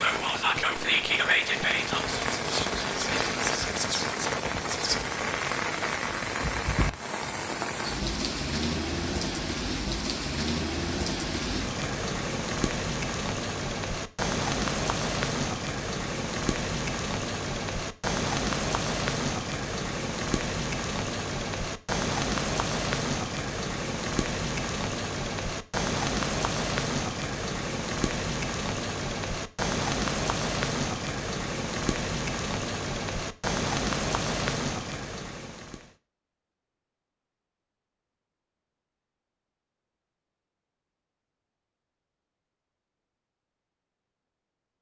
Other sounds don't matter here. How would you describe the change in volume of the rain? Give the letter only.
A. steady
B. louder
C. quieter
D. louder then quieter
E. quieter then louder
A.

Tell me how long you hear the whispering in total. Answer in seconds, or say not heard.
5 s.